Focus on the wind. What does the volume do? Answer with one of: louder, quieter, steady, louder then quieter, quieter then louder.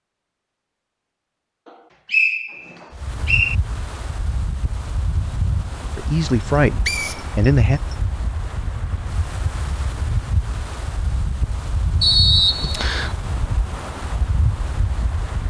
steady.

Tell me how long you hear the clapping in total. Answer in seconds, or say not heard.
not heard.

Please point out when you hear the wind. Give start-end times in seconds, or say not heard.
2.9-15.4.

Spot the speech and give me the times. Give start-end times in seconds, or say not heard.
6.0-7.8.